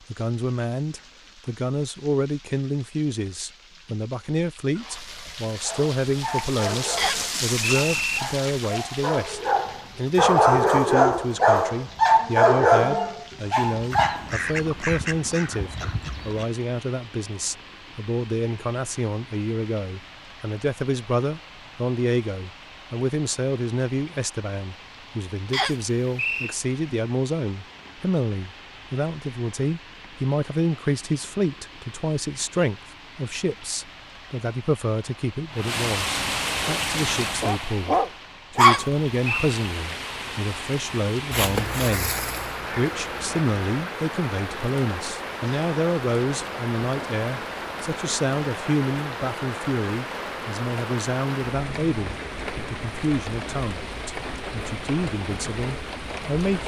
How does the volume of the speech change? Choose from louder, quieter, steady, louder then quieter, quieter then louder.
steady.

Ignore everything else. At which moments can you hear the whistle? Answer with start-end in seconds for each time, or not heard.
7.0-8.2, 25.5-26.6, 38.6-39.6.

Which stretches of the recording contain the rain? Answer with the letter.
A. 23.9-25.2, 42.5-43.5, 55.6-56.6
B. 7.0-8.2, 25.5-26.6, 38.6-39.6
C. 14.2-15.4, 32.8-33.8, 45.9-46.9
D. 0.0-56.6
D.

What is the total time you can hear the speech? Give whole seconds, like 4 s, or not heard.
56 s.